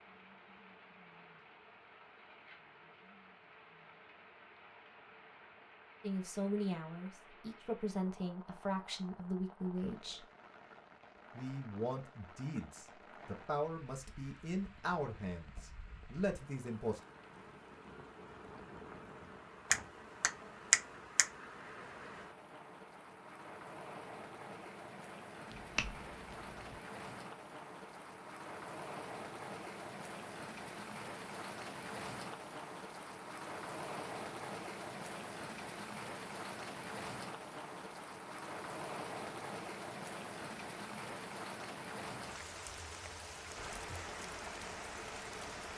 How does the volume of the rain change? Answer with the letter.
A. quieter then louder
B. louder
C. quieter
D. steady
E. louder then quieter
B.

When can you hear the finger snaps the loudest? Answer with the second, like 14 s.
21 s.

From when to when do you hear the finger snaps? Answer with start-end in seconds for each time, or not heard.
19.7-21.3, 25.5-26.8.